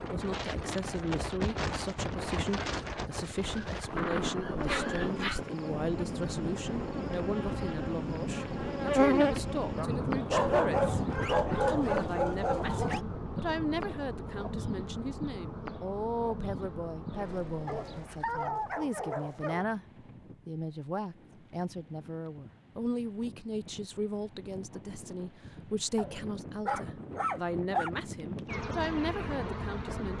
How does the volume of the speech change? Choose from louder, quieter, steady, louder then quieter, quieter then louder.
steady.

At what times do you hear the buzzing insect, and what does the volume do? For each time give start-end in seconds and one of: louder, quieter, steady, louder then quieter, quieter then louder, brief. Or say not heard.
4.5-18.1 louder then quieter
28.4-30.1 brief.